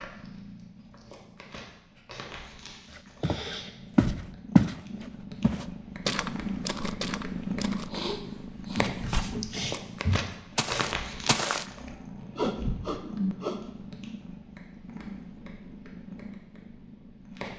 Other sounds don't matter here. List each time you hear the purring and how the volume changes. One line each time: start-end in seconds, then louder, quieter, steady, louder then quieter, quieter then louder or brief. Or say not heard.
0.0-17.5 louder then quieter.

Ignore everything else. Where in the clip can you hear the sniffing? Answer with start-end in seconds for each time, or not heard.
3.2-3.8, 7.9-8.9, 11.9-13.6.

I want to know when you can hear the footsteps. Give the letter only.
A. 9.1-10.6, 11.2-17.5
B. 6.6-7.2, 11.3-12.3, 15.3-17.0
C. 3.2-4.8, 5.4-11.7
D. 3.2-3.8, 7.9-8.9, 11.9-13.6
C.